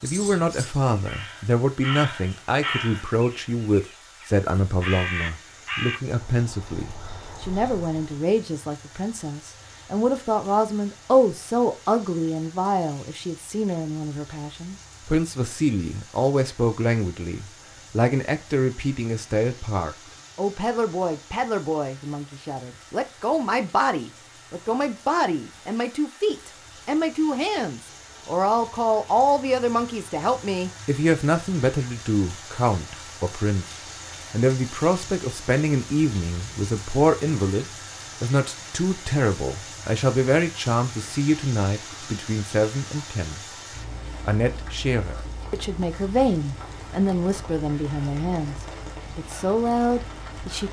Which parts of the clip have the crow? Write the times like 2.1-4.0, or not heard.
0.0-8.2.